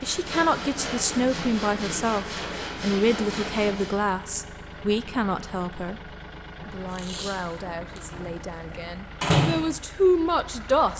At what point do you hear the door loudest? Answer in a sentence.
The volume of the door peaks at 9 seconds.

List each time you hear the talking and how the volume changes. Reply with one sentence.
You can hear the talking from 0.0 to 10.9 s, getting quieter then louder.